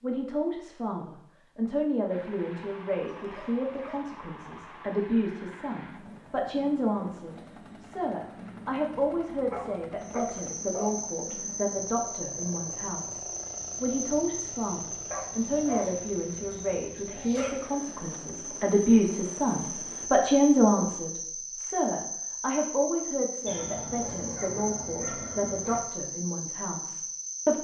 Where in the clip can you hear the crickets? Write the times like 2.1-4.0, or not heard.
10.0-27.5.